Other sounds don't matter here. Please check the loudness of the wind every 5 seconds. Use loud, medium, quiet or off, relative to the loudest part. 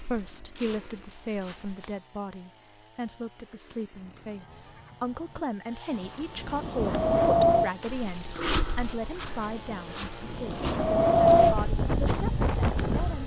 off, loud, loud.